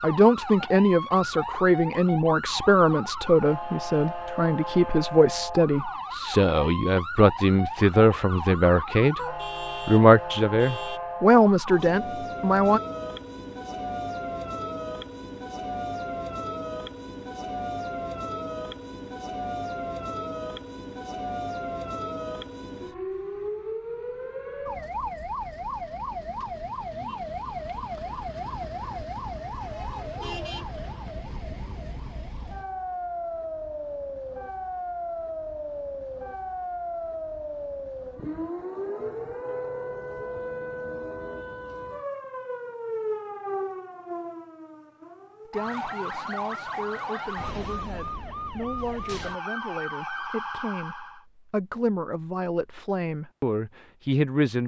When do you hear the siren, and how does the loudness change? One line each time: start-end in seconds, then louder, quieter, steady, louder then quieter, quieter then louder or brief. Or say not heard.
0.0-51.2 steady.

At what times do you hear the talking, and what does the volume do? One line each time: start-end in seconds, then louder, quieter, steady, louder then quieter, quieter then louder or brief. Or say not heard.
0.0-9.2 steady
9.8-12.8 brief
45.5-54.6 louder.